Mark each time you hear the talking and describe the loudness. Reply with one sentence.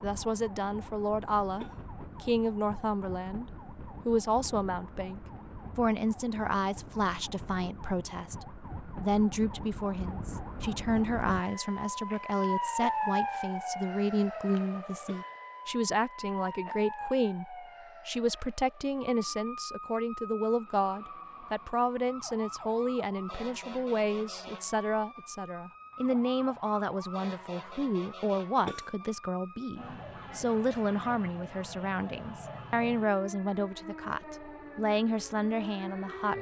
The talking can be heard from 0.0 to 36.3 s, at a steady volume.